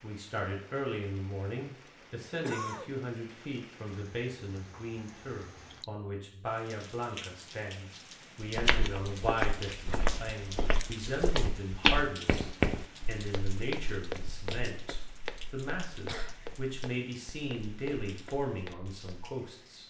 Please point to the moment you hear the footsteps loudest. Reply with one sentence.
The loudest moment of the footsteps is at 12 seconds.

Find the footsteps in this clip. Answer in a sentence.
The footsteps can be heard from 8.4 to 19.4 s.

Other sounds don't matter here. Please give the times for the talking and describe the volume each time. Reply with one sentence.
The talking can be heard from 0.0 to 19.8 s, at a steady volume.